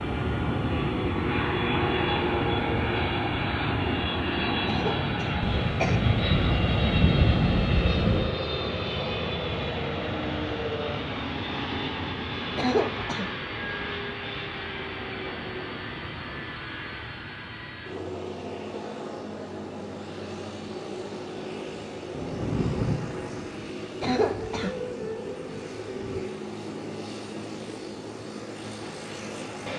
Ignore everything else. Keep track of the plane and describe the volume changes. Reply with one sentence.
The volume of the plane goes down.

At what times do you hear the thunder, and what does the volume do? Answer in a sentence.
The thunder can be heard briefly from 5.4 to 8.3 s; and from 22.1 to 26.2 s, getting quieter.